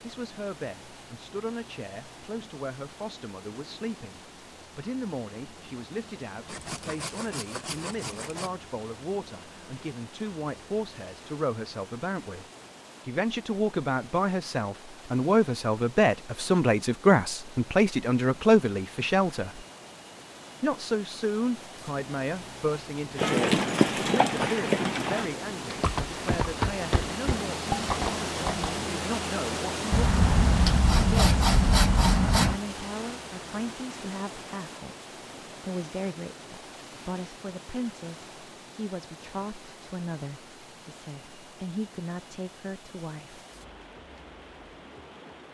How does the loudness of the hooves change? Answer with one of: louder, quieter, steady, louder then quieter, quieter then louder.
quieter.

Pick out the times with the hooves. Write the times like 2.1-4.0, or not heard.
23.1-28.8.